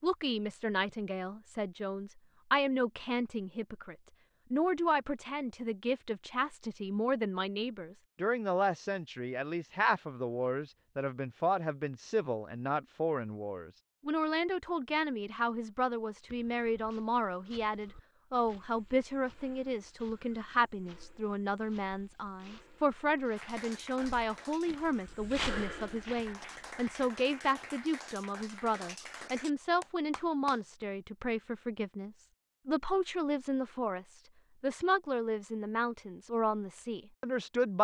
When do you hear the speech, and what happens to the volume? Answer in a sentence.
You can hear the speech from 0.0 to 37.7 s, at a steady volume.